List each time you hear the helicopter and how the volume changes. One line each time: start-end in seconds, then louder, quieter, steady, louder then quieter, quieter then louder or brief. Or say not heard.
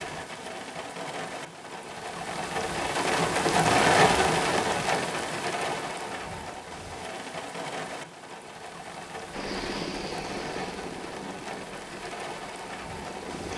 9.3-13.5 quieter.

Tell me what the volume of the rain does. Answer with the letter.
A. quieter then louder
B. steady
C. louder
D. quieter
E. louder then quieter
E.